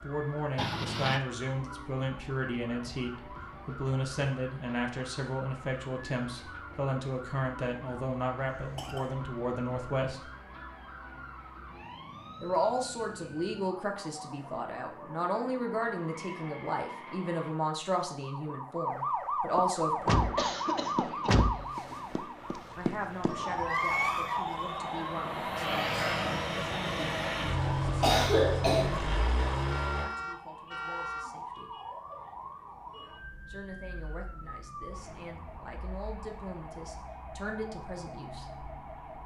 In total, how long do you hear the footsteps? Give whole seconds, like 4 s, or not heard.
not heard.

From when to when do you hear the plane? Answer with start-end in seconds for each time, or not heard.
19.8-30.1.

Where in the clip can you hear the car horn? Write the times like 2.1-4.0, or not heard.
0.6-1.2, 29.7-31.2.